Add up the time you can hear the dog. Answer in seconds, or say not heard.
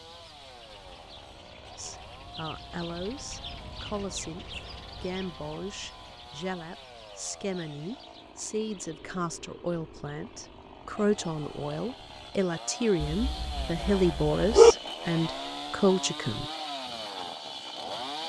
2 s.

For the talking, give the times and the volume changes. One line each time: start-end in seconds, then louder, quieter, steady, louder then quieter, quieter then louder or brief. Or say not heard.
1.8-16.4 louder.